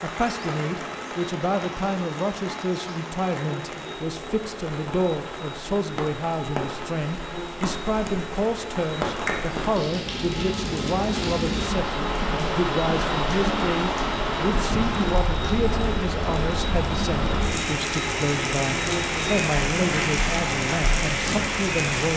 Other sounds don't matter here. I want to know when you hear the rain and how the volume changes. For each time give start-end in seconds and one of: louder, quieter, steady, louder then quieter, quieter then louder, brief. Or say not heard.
0.0-22.1 louder.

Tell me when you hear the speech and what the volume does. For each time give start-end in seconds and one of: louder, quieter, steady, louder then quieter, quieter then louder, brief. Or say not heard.
0.0-22.1 steady.